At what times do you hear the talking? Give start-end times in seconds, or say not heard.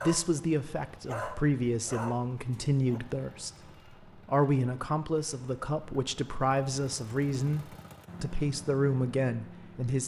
0.0-3.5, 4.2-10.0.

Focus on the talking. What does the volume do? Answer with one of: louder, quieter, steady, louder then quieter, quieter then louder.
steady.